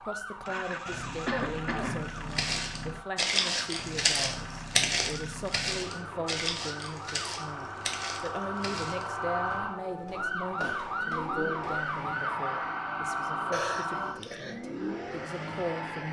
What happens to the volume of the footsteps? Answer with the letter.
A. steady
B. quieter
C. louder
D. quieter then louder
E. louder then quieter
B.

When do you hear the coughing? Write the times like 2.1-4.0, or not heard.
1.2-2.1, 13.5-14.6.